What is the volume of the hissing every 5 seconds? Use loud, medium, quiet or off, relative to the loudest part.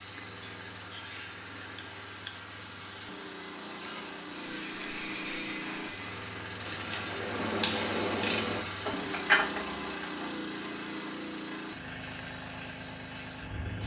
loud, loud, medium.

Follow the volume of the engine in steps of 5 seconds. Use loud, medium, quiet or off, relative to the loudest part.
medium, loud, loud.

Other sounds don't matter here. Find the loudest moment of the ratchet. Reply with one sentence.
The volume of the ratchet peaks at 9 seconds.